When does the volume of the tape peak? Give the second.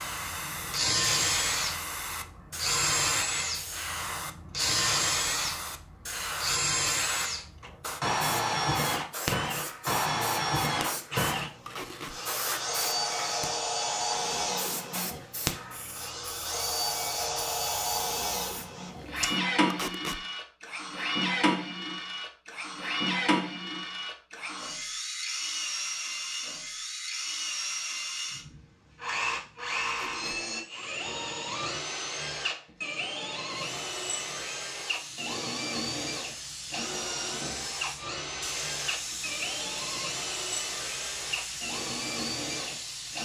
20 s.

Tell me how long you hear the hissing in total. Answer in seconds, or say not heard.
29 s.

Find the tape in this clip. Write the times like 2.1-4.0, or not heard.
11.7-12.2, 19.7-20.2, 29.9-30.4.